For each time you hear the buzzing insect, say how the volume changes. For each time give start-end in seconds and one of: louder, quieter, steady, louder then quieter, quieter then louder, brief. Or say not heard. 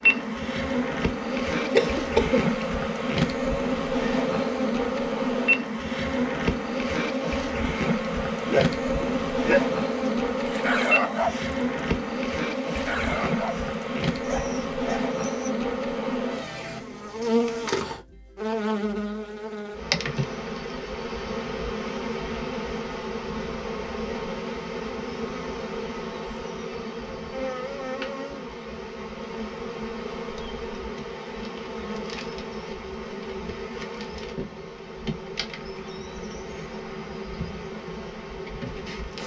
0.0-39.2 quieter.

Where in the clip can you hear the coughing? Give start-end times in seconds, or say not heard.
1.7-2.6.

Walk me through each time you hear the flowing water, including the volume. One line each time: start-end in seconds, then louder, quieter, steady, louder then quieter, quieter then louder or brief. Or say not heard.
not heard.